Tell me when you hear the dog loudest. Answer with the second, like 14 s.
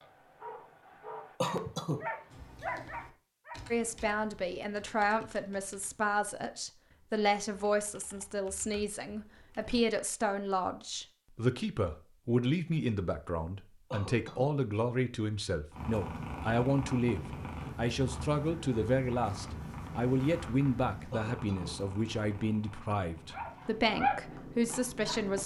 24 s.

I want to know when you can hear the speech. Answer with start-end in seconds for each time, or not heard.
3.7-25.4.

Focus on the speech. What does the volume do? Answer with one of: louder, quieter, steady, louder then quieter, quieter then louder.
steady.